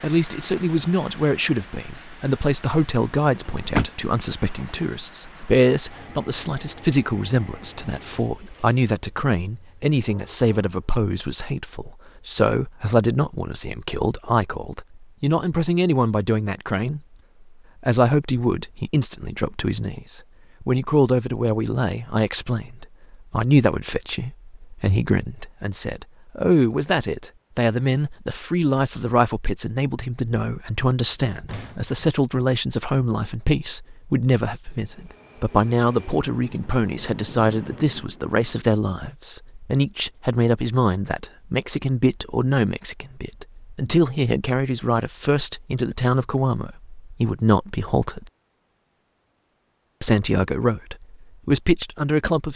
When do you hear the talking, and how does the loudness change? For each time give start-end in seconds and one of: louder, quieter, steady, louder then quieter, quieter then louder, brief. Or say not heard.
0.0-17.0 steady
17.8-48.2 steady
50.0-52.5 brief.